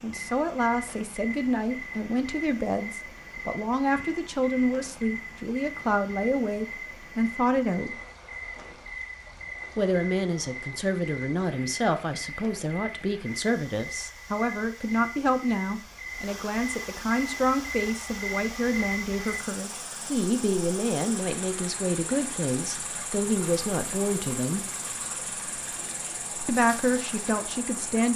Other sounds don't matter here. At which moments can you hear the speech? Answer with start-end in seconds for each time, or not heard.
0.0-8.0, 9.8-24.6, 26.4-28.1.